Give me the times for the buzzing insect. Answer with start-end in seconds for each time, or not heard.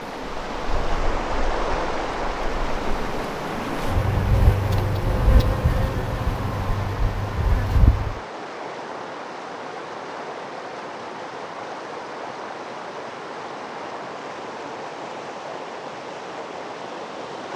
0.0-8.2.